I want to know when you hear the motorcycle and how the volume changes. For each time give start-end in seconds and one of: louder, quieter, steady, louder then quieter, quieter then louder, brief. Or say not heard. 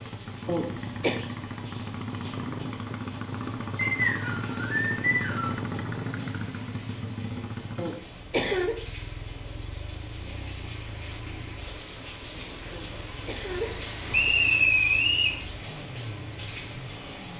0.0-17.3 quieter.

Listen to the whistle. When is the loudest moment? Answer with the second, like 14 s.
15 s.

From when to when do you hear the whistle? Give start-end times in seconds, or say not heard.
3.8-5.5, 14.1-15.4.